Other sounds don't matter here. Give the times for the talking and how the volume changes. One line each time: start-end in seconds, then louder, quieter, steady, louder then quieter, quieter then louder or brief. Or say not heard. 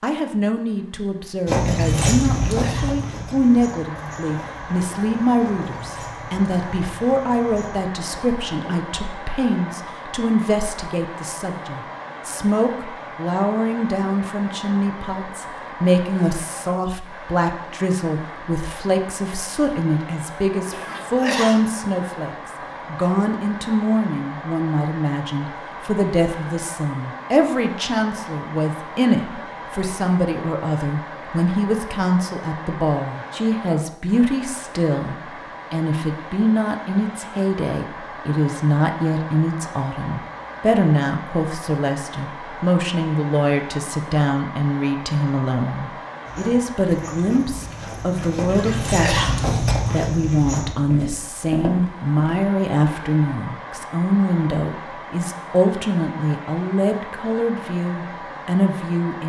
0.0-59.2 steady.